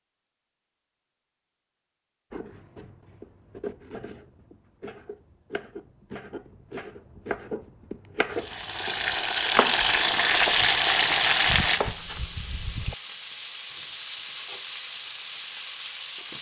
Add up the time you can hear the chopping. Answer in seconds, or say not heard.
11 s.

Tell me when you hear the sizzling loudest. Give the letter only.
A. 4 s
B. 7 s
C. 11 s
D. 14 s
C.